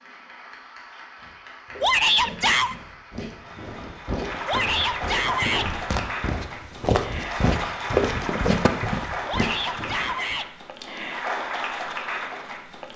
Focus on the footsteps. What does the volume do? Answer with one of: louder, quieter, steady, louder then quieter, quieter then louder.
louder.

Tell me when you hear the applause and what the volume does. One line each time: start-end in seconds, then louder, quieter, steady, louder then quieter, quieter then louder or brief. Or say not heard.
0.0-12.9 louder.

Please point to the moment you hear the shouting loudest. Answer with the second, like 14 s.
2 s.